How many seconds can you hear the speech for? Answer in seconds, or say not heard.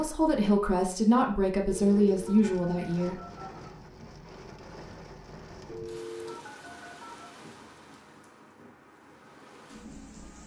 3 s.